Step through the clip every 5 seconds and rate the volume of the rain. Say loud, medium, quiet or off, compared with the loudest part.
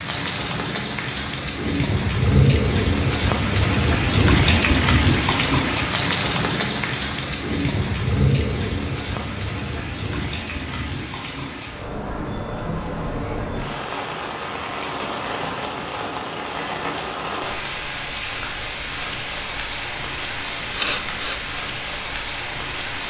loud, loud, medium, medium, medium.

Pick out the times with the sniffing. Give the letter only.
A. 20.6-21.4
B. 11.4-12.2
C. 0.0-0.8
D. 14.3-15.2
A.